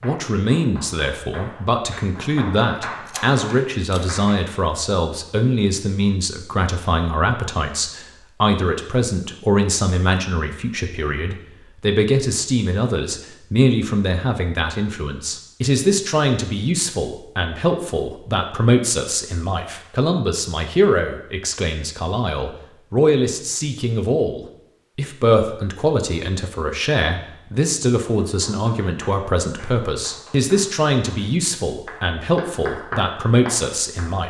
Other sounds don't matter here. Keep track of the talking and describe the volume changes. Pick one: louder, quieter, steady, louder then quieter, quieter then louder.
steady.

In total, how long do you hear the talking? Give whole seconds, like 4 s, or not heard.
34 s.